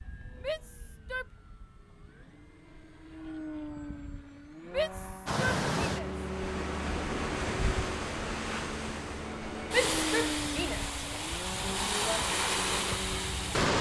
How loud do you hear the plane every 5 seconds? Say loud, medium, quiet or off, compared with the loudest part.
medium, loud, loud.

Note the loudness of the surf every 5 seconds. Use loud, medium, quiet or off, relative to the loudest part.
off, loud, loud.